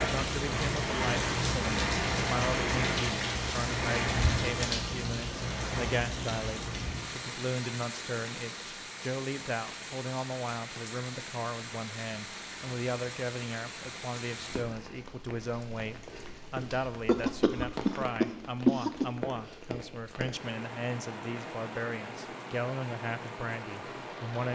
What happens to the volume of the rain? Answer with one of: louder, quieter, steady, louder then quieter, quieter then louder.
quieter.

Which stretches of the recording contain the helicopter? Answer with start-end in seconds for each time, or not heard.
not heard.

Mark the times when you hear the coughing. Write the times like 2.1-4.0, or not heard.
17.1-19.1.